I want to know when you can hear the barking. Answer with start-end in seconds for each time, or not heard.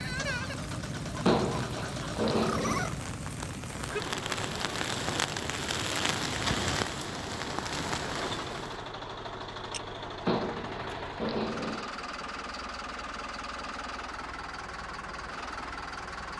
1.2-2.9, 10.2-11.9.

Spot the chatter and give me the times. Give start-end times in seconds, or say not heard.
not heard.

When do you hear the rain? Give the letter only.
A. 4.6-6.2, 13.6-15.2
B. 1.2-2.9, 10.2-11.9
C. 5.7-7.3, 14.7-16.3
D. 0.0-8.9
D.